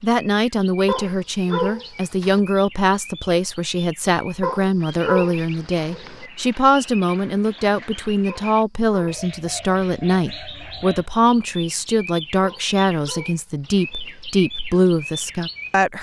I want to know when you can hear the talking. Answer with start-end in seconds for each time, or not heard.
0.0-15.9.